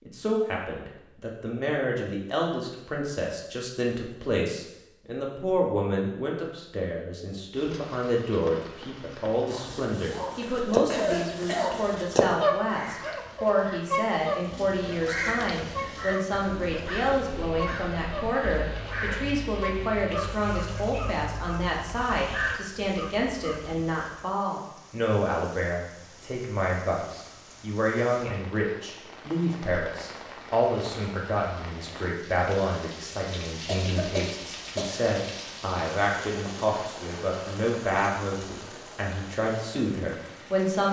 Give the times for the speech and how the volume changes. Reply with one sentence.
You can hear the speech from 0.1 to 40.8 s, at a steady volume.